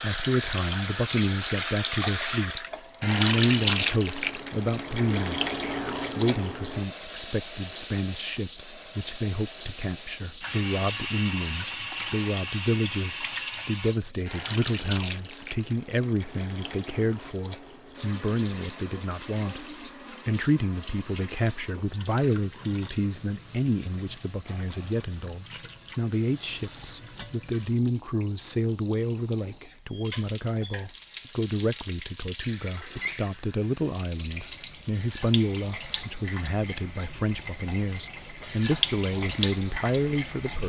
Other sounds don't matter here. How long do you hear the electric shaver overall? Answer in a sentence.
The electric shaver can't be heard in this clip.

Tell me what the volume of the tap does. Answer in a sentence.
The volume of the tap goes down, then up.